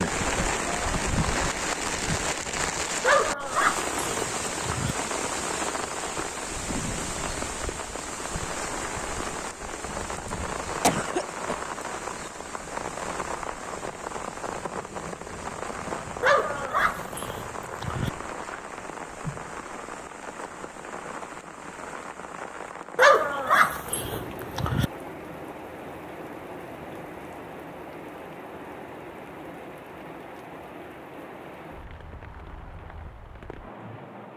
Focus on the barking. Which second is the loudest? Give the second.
23 s.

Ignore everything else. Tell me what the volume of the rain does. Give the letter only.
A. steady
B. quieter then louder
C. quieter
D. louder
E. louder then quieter
C.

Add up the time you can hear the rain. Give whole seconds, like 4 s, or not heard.
34 s.